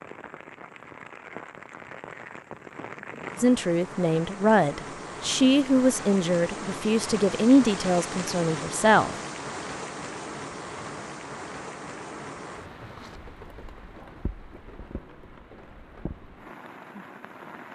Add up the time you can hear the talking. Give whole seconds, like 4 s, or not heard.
6 s.